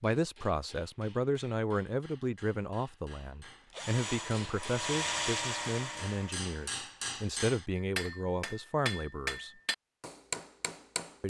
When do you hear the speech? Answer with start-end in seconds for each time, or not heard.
0.0-9.5.